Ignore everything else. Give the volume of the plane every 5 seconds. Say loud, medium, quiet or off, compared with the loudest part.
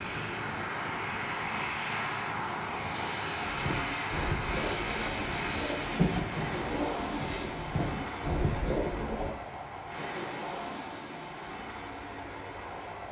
loud, loud, medium.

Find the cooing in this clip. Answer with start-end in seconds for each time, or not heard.
3.5-9.3.